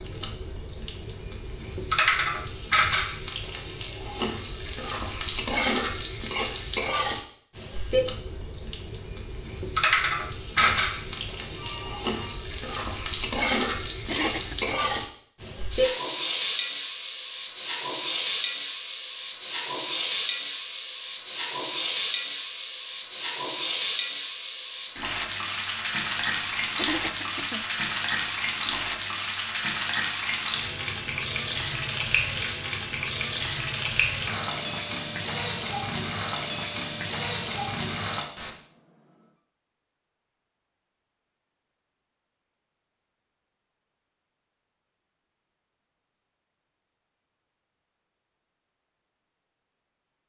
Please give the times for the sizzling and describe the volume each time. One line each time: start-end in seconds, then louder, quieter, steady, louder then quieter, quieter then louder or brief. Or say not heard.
0.0-38.3 steady.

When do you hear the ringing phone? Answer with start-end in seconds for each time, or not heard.
10.6-12.3, 38.4-39.1.